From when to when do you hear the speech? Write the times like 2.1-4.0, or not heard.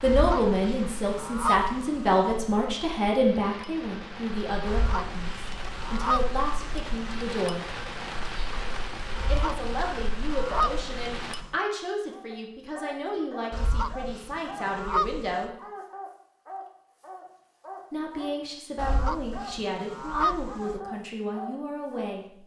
0.0-7.7, 9.2-15.6, 17.9-22.4.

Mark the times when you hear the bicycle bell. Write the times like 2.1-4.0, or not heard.
not heard.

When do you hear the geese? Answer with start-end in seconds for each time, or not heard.
0.0-2.4, 4.7-7.2, 9.2-11.6, 13.5-15.4, 18.8-20.8.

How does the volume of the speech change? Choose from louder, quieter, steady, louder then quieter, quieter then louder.
quieter.